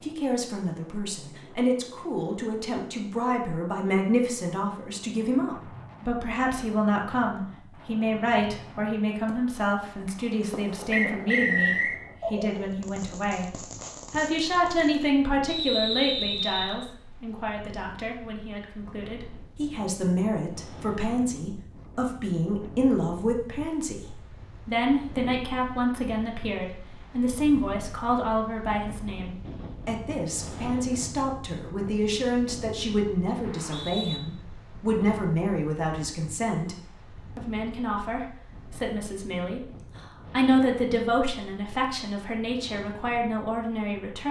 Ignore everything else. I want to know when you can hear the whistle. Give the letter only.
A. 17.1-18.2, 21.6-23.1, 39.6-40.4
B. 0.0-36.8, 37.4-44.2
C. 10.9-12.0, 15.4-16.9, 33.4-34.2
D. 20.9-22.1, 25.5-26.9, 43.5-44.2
C.